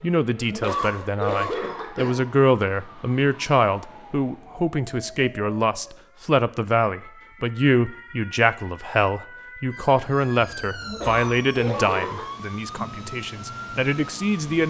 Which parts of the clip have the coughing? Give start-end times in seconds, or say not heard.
0.5-2.2, 10.8-12.3.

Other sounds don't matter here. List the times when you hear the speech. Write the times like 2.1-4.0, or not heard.
0.0-14.6.